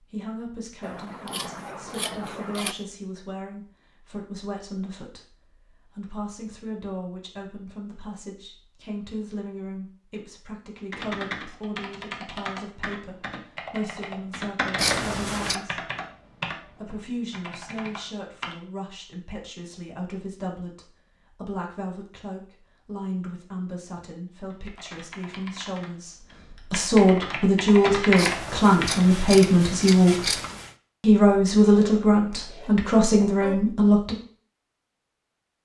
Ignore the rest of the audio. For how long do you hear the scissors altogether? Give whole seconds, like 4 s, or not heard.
5 s.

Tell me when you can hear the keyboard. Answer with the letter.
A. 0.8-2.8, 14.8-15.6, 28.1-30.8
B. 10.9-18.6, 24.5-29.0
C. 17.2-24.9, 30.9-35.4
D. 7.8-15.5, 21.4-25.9
B.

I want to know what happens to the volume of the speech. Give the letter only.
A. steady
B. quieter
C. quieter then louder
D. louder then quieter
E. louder
E.